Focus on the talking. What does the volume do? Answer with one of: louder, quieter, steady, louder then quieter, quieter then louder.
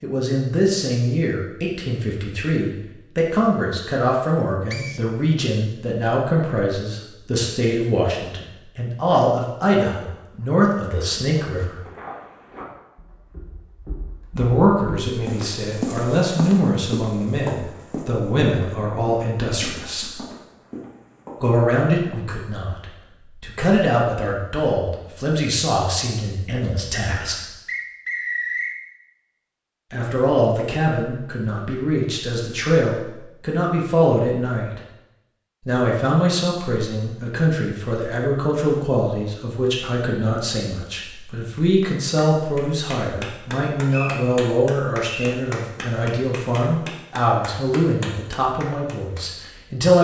steady.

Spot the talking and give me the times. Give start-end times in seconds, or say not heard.
0.0-11.8, 14.3-20.1, 21.4-27.4, 29.9-34.8, 35.6-49.9.